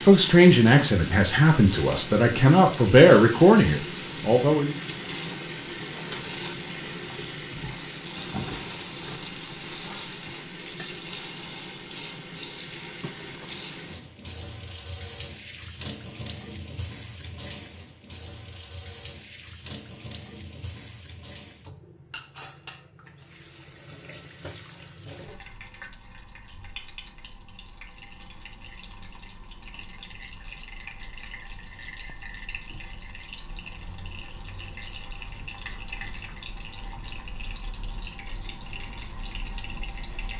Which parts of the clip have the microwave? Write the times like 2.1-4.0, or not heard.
not heard.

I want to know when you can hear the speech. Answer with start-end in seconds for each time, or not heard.
0.0-4.8.